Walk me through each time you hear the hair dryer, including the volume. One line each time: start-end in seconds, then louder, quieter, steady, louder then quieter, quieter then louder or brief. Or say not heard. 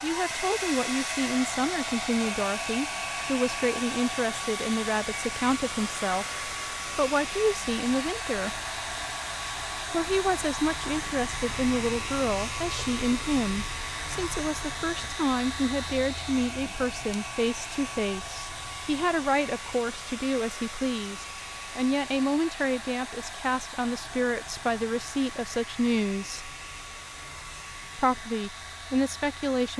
0.0-29.7 quieter.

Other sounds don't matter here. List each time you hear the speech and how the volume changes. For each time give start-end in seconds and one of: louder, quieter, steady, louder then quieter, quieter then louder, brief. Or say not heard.
0.0-8.6 steady
9.9-26.6 steady
27.9-29.7 brief.